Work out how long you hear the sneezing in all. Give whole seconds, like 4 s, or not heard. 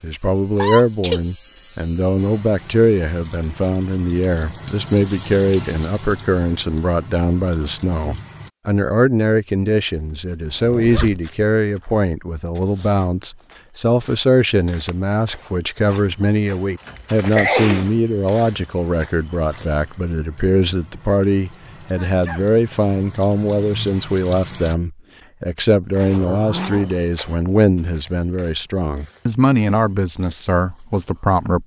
3 s.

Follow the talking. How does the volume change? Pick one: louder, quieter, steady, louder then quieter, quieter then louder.
steady.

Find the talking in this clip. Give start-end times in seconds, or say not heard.
0.0-31.6.